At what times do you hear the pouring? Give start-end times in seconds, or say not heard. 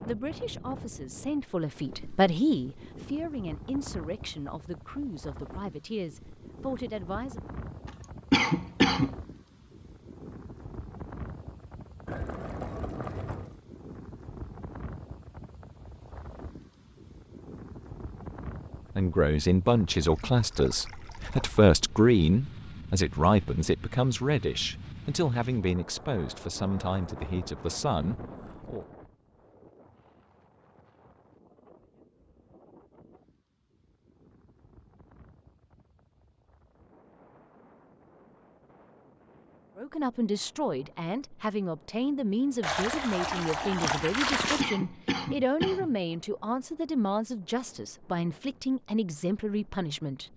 12.1-13.6, 20.1-21.7, 42.6-44.6.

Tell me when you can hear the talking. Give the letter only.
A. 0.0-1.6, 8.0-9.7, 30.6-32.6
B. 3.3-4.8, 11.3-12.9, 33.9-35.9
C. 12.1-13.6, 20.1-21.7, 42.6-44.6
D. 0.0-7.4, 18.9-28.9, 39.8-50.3
D.